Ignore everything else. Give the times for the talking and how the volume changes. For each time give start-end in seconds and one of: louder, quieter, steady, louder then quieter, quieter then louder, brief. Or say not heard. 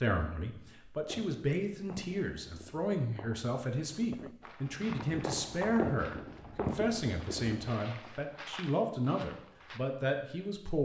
0.0-10.8 steady.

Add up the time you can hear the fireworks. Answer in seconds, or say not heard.
7 s.